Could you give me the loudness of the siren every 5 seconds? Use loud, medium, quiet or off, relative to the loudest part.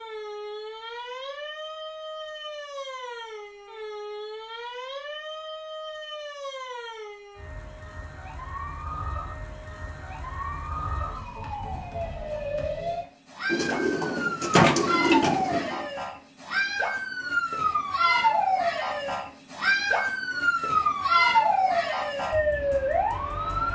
quiet, quiet, medium, loud, loud.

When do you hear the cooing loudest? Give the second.
15 s.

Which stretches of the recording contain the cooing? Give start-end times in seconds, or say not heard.
13.5-15.8.